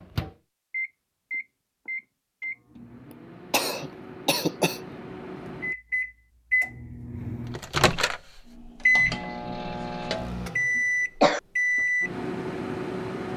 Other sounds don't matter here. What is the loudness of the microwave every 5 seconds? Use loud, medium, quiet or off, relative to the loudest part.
medium, loud, loud.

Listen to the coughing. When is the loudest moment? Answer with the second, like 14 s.
11 s.